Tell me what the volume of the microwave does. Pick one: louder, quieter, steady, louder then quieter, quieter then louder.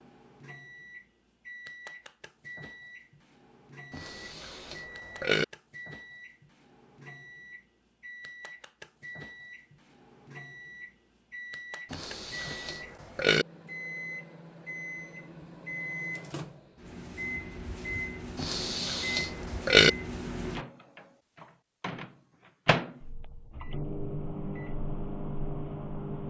louder.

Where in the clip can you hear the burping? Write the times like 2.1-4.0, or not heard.
3.9-5.5, 11.9-13.4, 18.4-19.9.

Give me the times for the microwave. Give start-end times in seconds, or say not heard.
0.0-26.2.